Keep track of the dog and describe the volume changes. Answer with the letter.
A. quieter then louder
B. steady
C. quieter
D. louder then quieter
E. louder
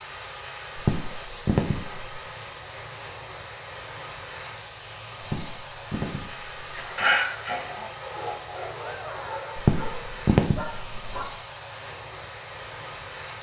C.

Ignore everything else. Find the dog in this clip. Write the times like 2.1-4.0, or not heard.
6.8-11.3.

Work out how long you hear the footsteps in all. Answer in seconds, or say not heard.
not heard.